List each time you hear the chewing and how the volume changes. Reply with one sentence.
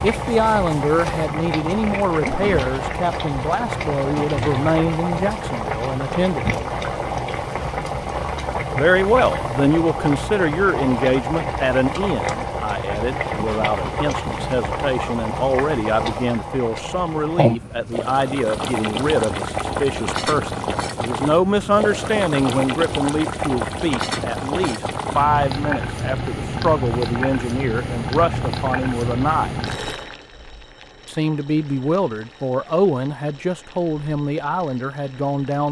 The chewing can't be heard in this clip.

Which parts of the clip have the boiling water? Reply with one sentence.
The boiling water can be heard from 0.0 to 35.6 s.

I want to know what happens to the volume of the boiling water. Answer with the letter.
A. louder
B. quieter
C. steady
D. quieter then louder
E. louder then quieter
B.